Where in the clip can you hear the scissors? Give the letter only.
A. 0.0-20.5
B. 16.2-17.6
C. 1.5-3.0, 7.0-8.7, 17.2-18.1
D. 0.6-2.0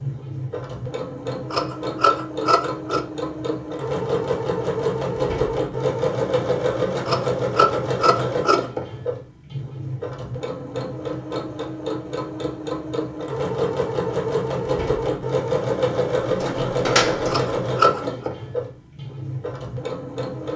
C.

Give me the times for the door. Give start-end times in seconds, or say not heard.
16.2-17.6.